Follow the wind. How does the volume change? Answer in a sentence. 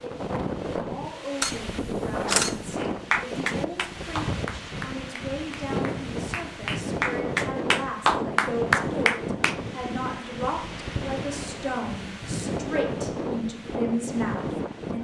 The loudness of the wind stays about the same.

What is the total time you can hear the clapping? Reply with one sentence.
You can hear the clapping for 7 seconds altogether.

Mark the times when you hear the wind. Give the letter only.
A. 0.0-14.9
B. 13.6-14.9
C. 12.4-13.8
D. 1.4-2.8
A.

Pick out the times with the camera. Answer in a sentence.
The camera can be heard from 1.4 to 2.8 s.